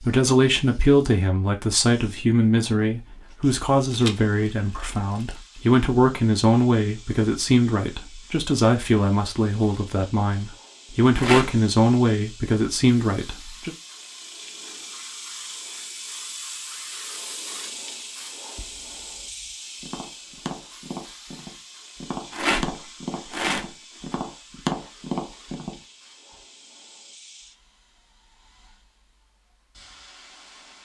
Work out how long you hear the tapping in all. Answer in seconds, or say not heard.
7 s.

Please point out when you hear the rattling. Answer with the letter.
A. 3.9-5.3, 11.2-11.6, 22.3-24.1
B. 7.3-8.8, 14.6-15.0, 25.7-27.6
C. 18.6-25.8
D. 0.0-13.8
A.